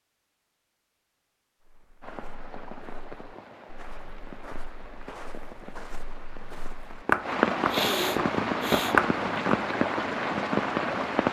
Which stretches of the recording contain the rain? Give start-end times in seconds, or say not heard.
2.0-11.2.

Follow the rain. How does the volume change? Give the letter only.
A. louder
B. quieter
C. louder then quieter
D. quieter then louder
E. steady
A.